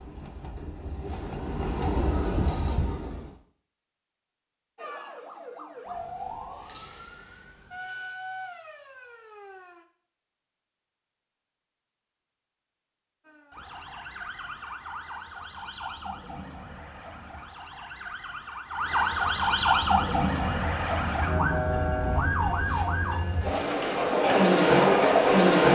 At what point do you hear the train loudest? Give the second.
25 s.